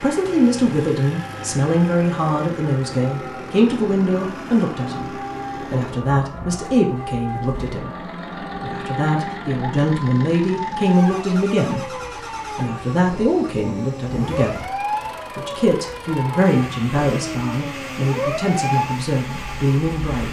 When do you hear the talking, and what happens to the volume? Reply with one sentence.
You can hear the talking from 0.0 to 20.2 s, at a steady volume.